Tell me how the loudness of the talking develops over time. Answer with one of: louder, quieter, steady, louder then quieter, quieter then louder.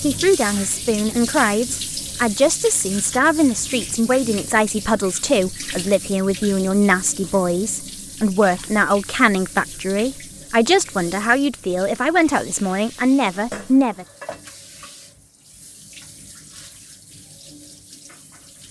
steady.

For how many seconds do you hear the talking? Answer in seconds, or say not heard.
14 s.